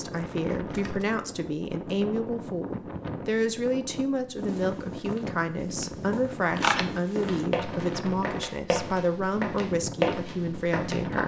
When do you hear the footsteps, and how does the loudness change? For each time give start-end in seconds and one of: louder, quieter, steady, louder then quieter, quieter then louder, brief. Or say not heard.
4.3-11.2 louder.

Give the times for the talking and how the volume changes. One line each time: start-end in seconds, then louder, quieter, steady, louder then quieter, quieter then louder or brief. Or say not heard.
0.0-11.2 steady.